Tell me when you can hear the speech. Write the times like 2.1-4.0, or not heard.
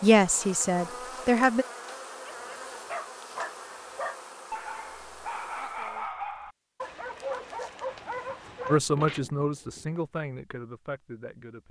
0.0-1.6, 8.7-11.6.